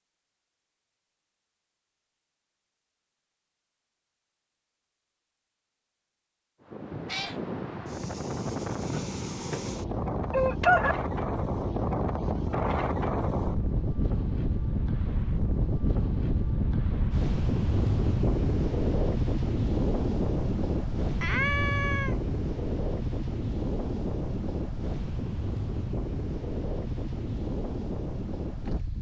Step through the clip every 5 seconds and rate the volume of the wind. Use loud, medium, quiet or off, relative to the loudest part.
off, medium, loud, loud, loud, medium.